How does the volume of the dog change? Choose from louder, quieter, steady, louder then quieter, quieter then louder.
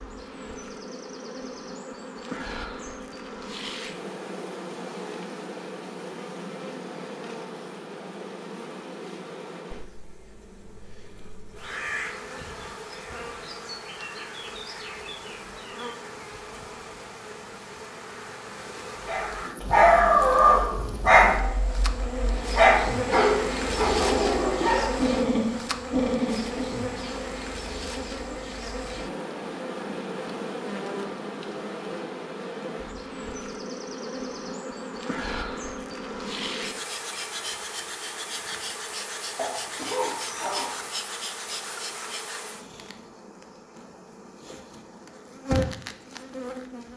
quieter.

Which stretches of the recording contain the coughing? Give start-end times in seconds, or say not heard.
39.4-40.9.